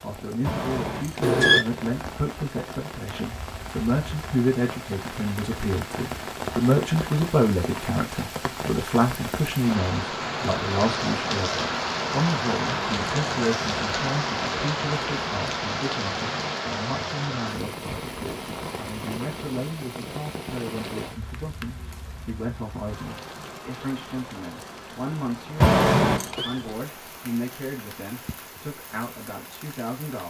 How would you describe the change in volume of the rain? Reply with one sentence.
The loudness of the rain goes up, then down.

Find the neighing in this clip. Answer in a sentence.
You can hear the neighing from 0.4 to 1.6 s and from 25.6 to 26.4 s.